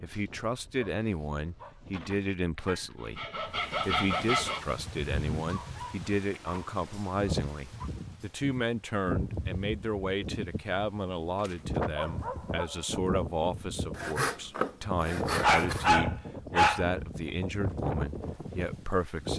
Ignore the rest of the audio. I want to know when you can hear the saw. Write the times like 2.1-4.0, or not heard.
1.9-4.7, 13.9-15.9.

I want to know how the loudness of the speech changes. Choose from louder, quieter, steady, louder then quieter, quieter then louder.
steady.